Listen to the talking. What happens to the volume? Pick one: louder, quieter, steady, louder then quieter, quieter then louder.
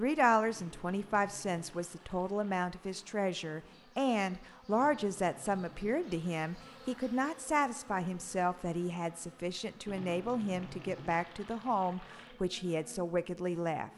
steady.